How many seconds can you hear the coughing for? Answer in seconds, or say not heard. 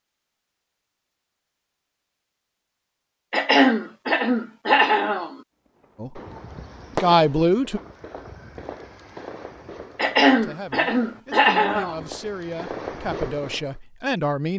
4 s.